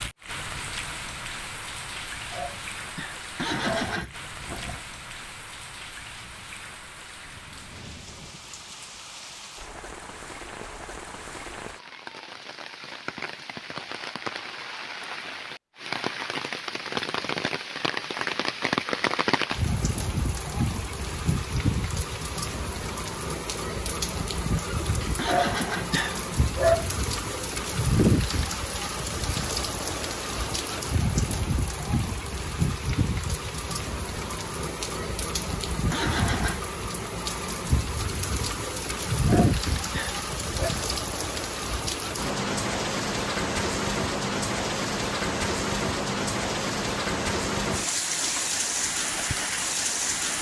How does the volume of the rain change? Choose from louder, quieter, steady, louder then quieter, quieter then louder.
louder.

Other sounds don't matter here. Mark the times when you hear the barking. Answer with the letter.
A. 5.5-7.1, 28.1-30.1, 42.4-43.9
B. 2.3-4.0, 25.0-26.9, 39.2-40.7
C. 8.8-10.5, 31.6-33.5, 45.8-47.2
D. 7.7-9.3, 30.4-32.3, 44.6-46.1
B.